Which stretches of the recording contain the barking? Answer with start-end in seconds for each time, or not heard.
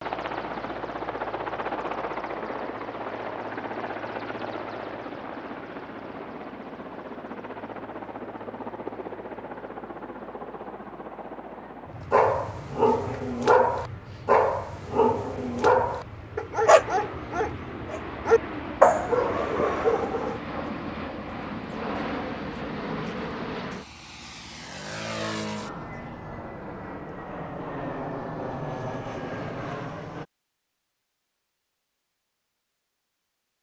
12.1-20.4.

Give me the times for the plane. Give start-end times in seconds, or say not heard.
0.0-30.2.